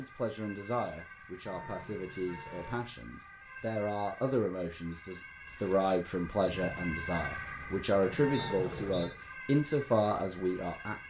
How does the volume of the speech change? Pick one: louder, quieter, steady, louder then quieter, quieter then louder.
louder.